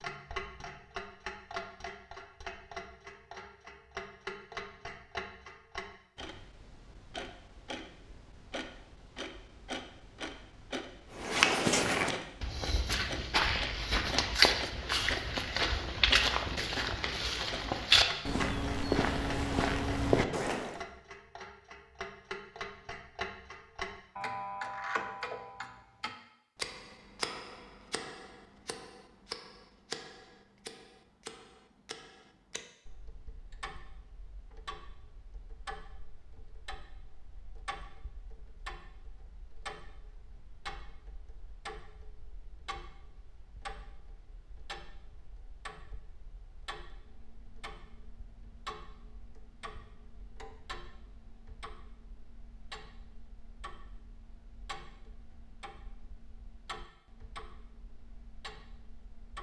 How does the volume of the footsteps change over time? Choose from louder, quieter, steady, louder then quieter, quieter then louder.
steady.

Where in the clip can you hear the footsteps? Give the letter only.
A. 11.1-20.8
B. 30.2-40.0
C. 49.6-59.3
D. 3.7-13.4
A.